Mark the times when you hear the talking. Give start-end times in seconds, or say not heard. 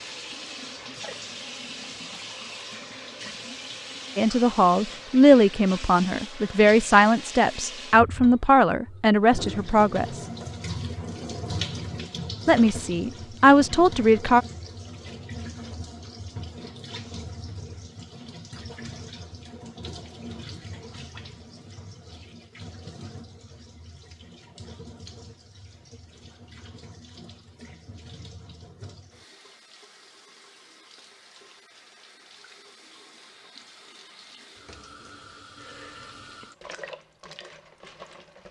4.2-10.2, 12.4-14.4.